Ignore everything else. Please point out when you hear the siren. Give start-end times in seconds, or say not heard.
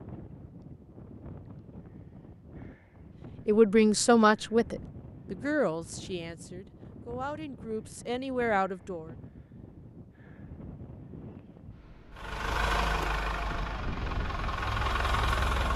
not heard.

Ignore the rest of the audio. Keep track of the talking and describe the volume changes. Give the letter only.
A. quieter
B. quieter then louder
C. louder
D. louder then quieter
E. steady
B.